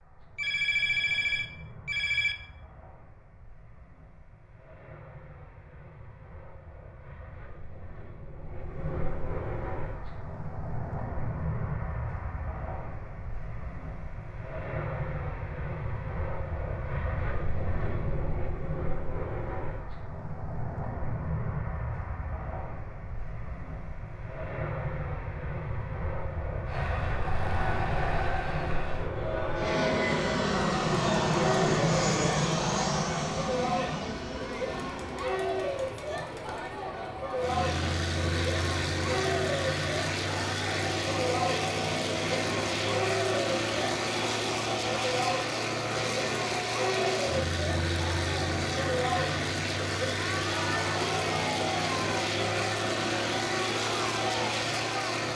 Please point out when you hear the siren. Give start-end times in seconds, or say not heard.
not heard.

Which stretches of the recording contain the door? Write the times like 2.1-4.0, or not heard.
not heard.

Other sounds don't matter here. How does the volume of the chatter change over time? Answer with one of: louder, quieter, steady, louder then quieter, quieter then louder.
steady.